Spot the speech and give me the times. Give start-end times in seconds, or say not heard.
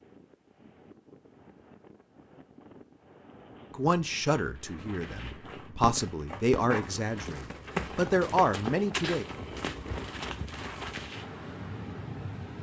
3.7-9.2.